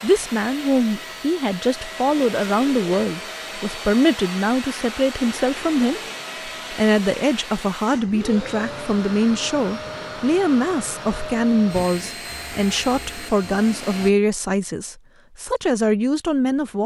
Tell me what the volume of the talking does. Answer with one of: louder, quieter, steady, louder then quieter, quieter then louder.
steady.